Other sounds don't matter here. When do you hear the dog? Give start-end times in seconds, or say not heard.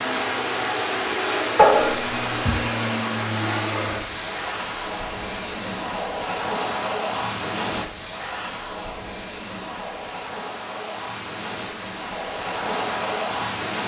1.6-2.6.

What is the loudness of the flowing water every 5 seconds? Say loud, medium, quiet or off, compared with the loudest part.
loud, medium, medium.